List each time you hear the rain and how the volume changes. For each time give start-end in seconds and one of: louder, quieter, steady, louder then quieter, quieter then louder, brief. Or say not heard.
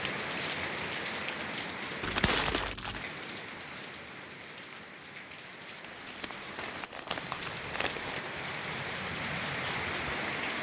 0.0-10.5 quieter then louder.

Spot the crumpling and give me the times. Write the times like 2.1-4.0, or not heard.
2.0-3.0, 5.8-8.2.